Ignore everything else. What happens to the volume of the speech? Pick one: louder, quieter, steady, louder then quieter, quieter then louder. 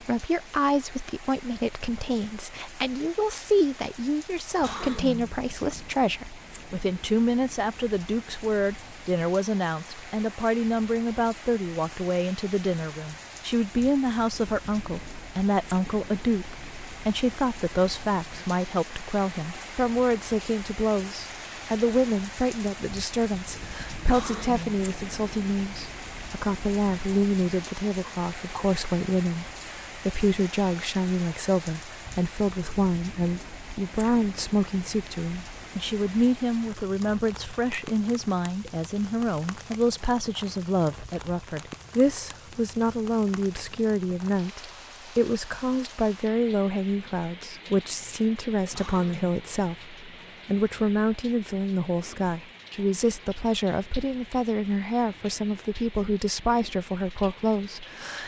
steady.